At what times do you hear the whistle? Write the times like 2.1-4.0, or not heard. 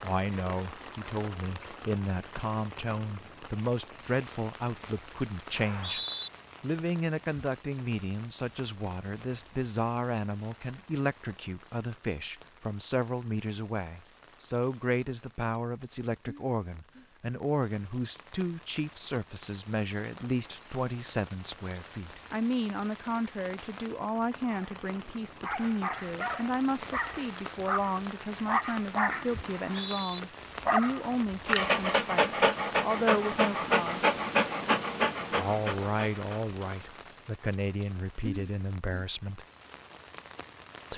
5.5-6.3, 29.4-30.2.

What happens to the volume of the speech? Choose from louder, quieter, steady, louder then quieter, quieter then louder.
steady.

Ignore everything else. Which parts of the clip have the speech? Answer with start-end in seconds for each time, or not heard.
0.0-6.0, 6.6-34.1, 35.3-39.5.